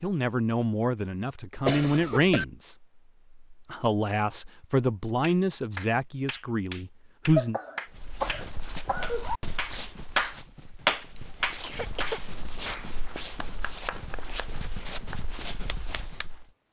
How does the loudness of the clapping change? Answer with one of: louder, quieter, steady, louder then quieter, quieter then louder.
louder then quieter.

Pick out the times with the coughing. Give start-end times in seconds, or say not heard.
1.6-2.5, 7.3-9.2, 11.2-12.2.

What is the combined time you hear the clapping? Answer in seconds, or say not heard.
11 s.